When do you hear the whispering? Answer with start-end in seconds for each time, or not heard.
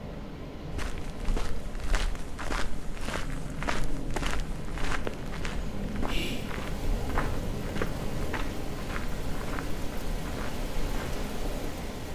6.0-6.5.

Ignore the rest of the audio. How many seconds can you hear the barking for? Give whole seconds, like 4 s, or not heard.
not heard.